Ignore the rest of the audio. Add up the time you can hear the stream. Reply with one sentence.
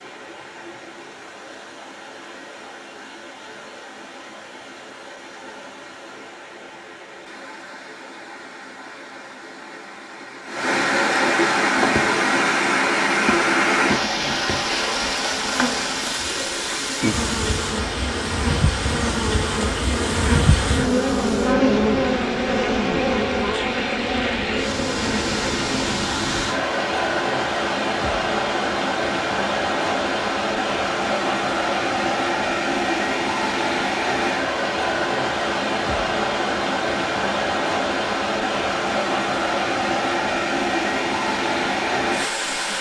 The stream can be heard for 43 seconds in total.